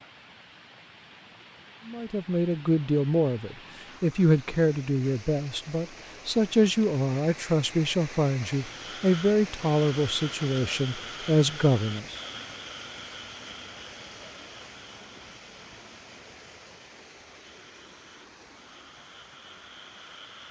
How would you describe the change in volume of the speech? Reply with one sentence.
The loudness of the speech stays about the same.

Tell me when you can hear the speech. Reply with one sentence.
You can hear the speech from 1.9 to 12.2 s.